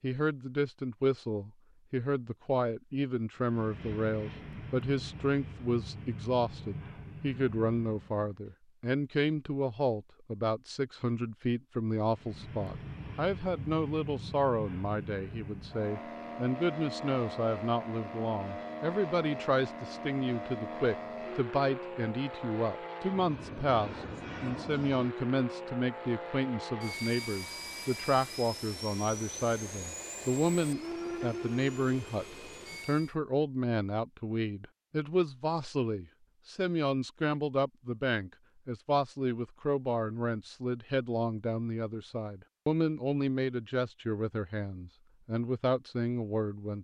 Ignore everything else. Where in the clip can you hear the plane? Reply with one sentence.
The plane can be heard from 3.4 to 8.5 s and from 12.1 to 33.1 s.